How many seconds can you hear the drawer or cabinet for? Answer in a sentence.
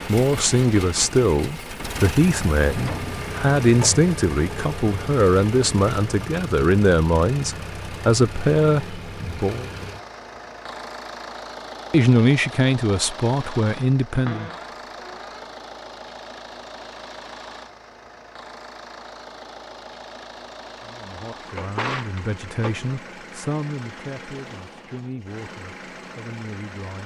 You can hear the drawer or cabinet for 4 seconds altogether.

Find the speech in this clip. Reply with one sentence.
The speech can be heard from 0.1 to 9.7 s, from 11.9 to 14.5 s and from 20.8 to 27.0 s.